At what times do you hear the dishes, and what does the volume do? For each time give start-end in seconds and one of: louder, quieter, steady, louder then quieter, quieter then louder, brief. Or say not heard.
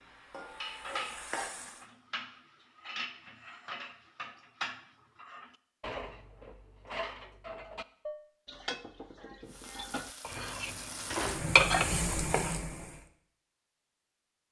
0.6-12.2 louder.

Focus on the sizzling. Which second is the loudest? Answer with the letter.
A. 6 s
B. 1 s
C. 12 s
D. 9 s
C.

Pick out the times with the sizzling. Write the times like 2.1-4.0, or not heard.
0.0-1.9, 9.4-13.1.